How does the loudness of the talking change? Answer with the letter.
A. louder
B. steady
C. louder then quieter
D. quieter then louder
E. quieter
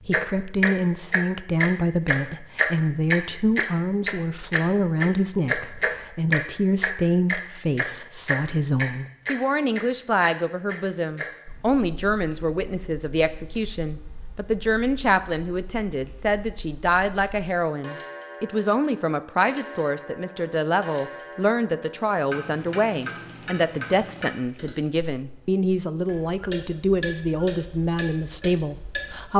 B.